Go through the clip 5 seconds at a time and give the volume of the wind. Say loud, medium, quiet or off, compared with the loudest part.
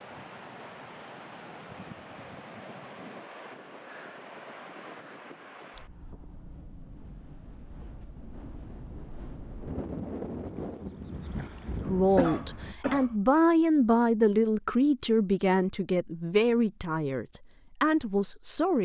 medium, medium, loud, off.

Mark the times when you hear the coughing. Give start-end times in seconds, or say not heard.
12.2-13.2.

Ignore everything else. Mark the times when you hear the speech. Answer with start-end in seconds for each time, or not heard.
11.8-18.8.